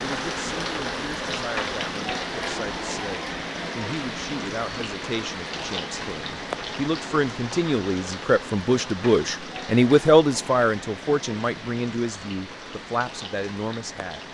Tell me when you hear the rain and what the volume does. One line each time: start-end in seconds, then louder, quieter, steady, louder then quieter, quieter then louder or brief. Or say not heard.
0.0-14.2 quieter.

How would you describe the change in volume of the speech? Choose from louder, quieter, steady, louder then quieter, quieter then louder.
louder then quieter.